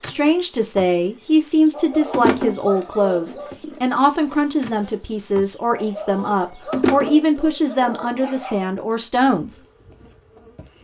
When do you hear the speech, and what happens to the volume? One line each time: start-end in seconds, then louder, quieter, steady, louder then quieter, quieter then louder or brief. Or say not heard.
0.0-9.6 steady.